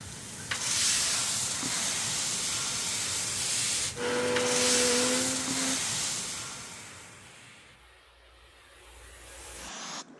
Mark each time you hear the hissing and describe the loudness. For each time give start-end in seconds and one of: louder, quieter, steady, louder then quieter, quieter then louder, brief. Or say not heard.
0.0-10.1 quieter.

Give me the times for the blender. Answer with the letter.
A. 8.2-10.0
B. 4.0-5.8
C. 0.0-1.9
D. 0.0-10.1
B.